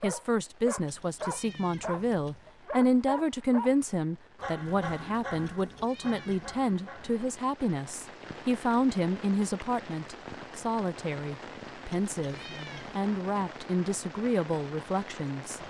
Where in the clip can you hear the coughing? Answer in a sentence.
The coughing can't be heard in this clip.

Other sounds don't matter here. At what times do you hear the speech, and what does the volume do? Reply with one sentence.
You can hear the speech from 0.0 to 15.6 s, at a steady volume.